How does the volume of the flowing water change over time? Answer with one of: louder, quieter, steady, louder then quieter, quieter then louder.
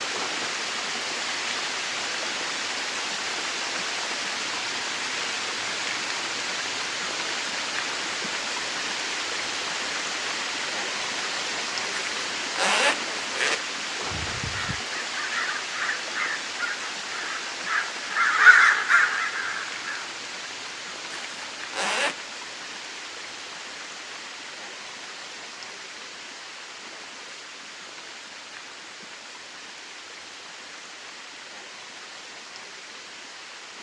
quieter.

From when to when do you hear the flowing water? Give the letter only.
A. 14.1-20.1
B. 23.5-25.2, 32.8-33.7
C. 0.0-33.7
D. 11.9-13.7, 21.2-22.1
C.